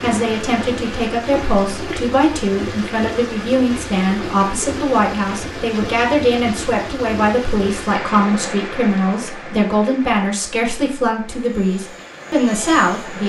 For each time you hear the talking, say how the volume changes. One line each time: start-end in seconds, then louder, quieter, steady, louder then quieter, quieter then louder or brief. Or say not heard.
0.0-13.2 steady.